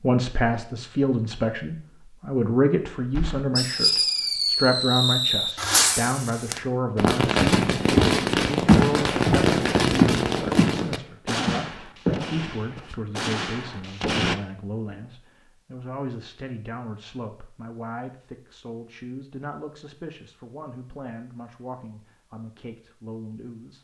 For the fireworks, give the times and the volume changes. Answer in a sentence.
You can hear the fireworks from 3.1 to 14.3 s, getting quieter.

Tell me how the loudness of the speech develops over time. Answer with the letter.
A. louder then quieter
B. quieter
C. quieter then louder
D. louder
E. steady
B.